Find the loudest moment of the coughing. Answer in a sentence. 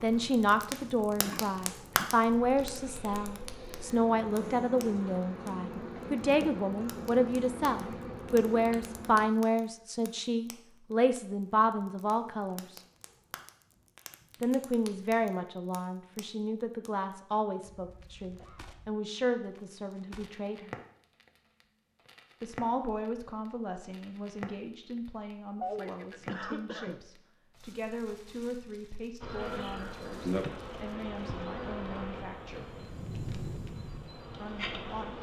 The volume of the coughing peaks at 26 seconds.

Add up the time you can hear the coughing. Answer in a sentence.
You can hear the coughing for 4 seconds altogether.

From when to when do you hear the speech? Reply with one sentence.
You can hear the speech from 0.0 to 12.8 s, from 14.4 to 20.8 s, from 22.4 to 32.6 s and from 34.4 to 35.1 s.